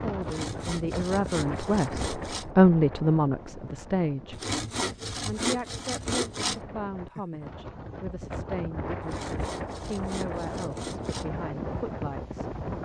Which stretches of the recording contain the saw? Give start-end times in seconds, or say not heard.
0.2-2.5, 4.3-6.6, 9.0-11.3.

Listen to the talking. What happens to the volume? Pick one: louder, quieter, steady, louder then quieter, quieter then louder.
louder then quieter.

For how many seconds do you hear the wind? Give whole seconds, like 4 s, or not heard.
13 s.